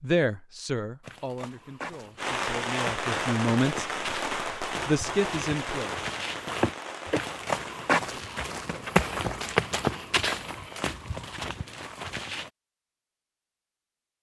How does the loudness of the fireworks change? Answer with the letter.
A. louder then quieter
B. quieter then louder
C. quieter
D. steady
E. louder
C.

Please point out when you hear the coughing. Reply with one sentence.
You can hear the coughing from 6.6 to 7.2 s.